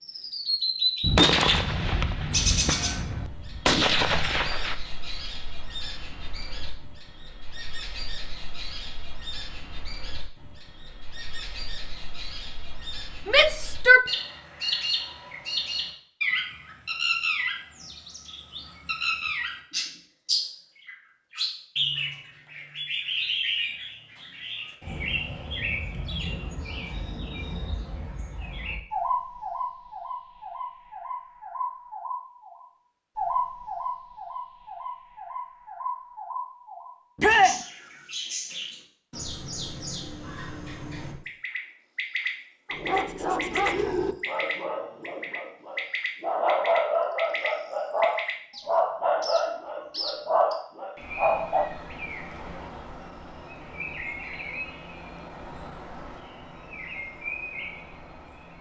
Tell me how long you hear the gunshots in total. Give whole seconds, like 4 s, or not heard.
4 s.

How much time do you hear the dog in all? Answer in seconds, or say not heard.
9 s.